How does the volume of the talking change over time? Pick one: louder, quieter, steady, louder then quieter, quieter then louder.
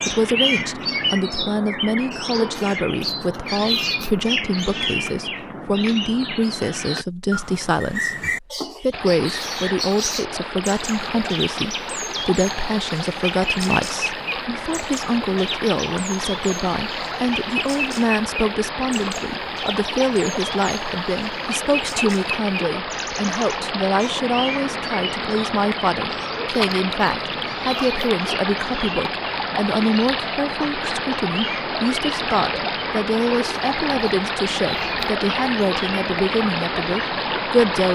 steady.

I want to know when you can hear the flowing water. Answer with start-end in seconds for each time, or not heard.
8.9-37.8.